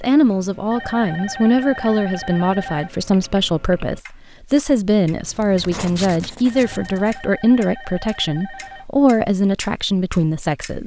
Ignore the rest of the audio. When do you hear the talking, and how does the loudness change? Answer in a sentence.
The talking can be heard from 0.0 to 10.8 s, at a steady volume.